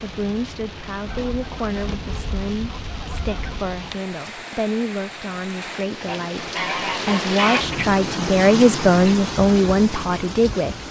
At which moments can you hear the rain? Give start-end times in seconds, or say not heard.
0.0-10.8.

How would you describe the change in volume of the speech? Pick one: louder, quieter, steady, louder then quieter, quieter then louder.
louder.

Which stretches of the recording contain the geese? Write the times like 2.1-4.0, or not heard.
1.1-3.8, 6.0-7.8.